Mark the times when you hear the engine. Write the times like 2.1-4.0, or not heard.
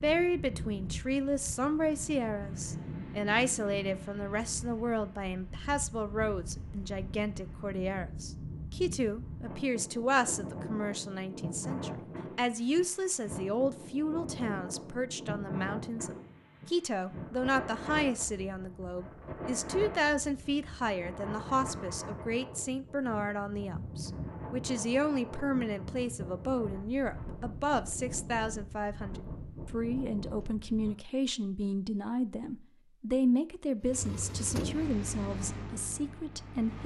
33.8-36.8.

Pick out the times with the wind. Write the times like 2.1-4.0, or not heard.
0.0-30.9.